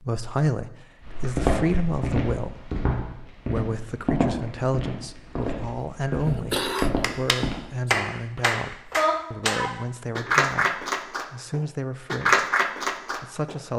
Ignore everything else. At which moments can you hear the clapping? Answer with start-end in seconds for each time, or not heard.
6.8-13.6.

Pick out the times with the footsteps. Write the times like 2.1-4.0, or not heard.
1.1-7.5.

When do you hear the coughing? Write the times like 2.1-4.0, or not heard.
6.2-7.0.